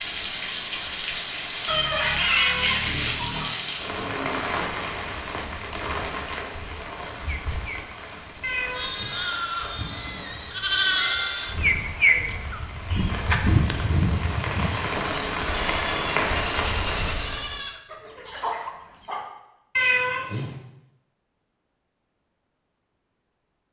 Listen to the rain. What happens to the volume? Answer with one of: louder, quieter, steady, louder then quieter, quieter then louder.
quieter then louder.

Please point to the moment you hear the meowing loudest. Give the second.
20 s.